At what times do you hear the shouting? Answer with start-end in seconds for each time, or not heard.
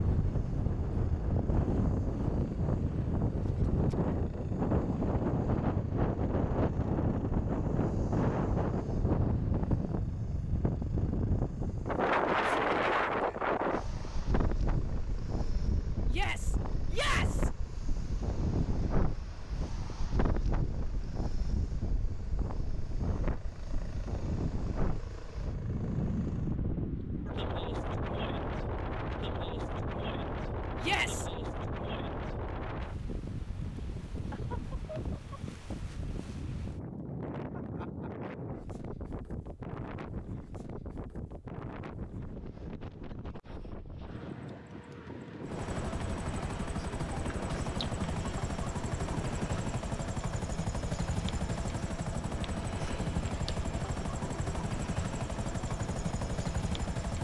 16.1-17.5, 30.8-31.2.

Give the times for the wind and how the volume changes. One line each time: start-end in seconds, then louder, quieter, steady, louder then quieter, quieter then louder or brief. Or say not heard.
0.0-57.0 quieter.